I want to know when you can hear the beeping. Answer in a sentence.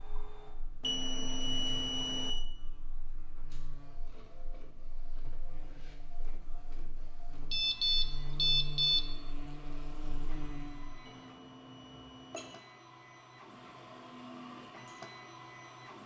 You can hear the beeping from 0.8 to 2.4 s, from 7.5 to 9.1 s and from 11.0 to 12.6 s.